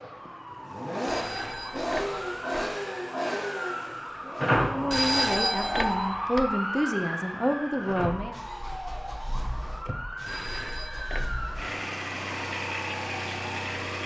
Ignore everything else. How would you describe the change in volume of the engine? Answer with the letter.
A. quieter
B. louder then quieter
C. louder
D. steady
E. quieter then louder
E.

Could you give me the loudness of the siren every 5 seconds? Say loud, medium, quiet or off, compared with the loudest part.
medium, loud, medium.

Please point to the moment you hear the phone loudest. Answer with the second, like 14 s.
5 s.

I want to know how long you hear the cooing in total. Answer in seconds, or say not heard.
not heard.